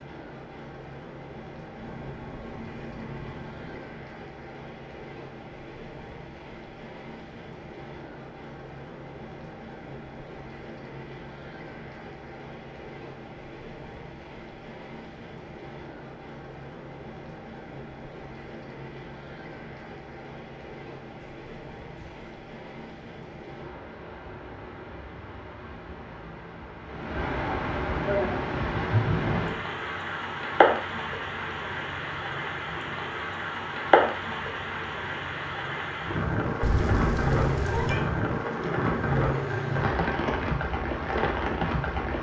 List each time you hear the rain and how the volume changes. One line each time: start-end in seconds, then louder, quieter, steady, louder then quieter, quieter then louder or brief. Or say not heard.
0.0-42.1 louder.